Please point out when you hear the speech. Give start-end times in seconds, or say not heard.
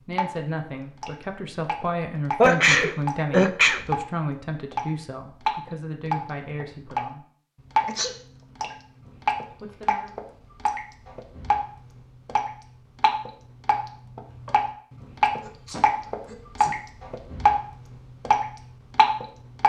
0.1-7.2, 9.6-10.2.